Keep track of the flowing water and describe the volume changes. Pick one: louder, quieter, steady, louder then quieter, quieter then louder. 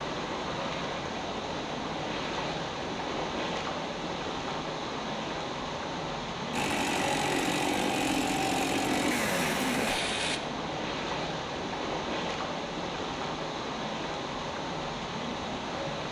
steady.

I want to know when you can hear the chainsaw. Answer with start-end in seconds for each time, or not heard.
6.5-10.4.